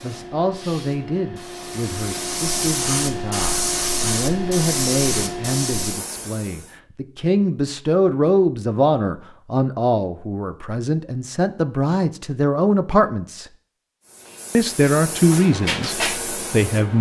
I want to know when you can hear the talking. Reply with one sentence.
You can hear the talking from 0.0 to 13.4 s and from 14.5 to 16.9 s.